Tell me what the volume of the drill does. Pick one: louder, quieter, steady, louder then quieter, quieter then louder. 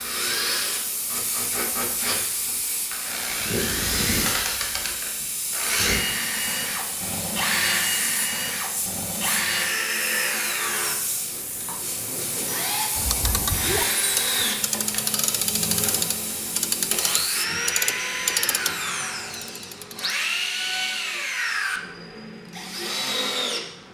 steady.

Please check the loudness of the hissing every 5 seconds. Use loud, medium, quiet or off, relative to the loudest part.
loud, loud, loud, loud, off.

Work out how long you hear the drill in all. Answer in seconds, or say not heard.
24 s.